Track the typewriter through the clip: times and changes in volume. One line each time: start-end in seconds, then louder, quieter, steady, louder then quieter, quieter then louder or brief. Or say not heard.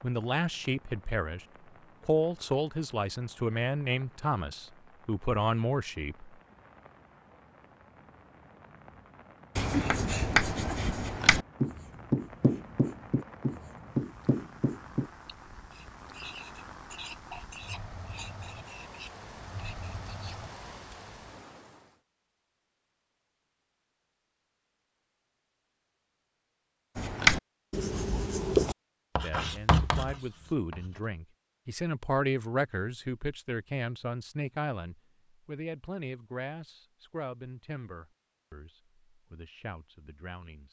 not heard.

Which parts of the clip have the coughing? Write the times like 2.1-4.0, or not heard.
9.7-10.8.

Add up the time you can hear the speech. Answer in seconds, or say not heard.
17 s.